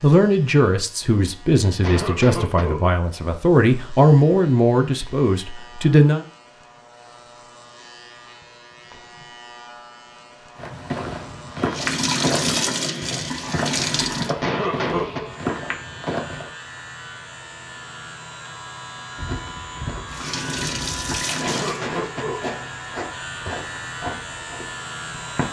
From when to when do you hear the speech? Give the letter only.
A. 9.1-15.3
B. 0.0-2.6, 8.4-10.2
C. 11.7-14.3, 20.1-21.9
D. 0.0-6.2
D.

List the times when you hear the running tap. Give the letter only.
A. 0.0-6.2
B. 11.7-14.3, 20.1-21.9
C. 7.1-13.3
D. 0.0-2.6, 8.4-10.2
B.